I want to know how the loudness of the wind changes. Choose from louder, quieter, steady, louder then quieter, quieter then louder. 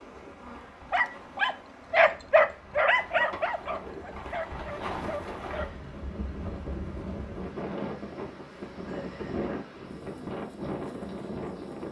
louder.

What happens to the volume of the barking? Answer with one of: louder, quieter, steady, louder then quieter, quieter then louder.
quieter.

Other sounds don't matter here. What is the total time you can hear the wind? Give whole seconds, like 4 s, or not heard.
12 s.